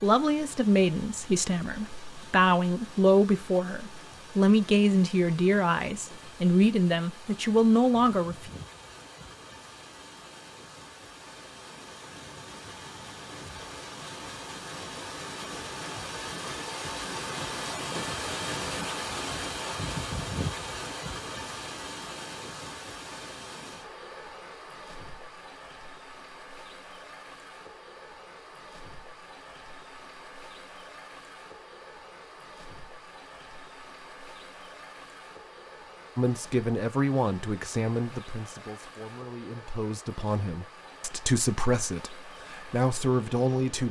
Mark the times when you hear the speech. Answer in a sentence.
The speech can be heard from 0.0 to 8.5 s and from 36.1 to 43.8 s.